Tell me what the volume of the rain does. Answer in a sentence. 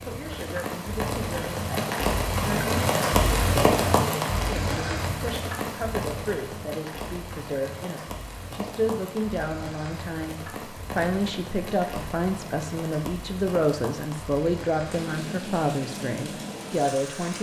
The loudness of the rain goes down.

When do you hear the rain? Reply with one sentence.
You can hear the rain from 0.0 to 17.3 s.